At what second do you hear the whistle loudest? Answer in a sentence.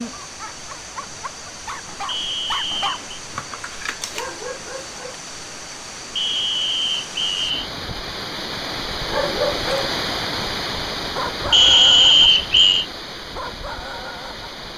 The loudest moment of the whistle is at 12 seconds.